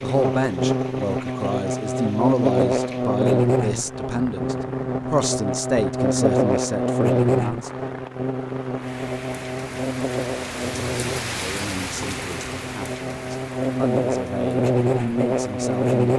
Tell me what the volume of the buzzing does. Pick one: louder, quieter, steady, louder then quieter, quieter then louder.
quieter then louder.